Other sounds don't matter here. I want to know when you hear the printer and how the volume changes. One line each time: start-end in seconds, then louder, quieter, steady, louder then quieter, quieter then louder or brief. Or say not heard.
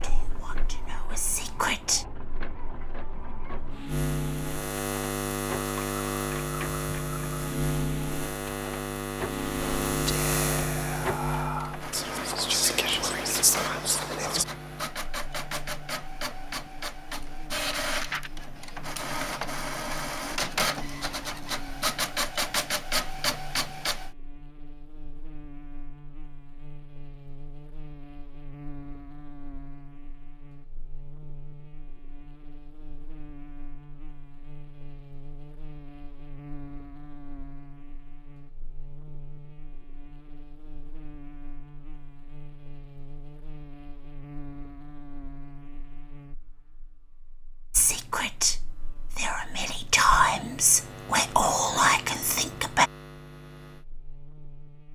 0.0-24.1 louder.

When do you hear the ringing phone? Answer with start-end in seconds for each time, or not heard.
not heard.